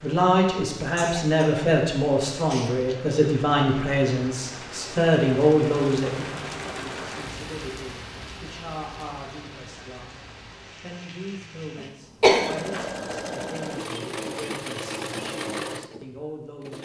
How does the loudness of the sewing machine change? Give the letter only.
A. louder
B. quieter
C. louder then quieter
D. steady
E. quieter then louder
D.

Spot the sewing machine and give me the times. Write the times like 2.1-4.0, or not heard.
12.2-16.7.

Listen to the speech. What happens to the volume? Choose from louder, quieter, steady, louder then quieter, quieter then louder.
quieter.